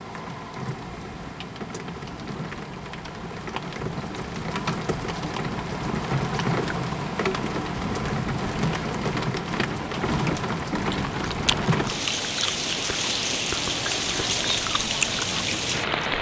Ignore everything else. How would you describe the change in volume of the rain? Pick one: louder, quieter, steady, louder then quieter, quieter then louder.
louder.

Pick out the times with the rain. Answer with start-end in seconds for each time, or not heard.
0.0-16.1.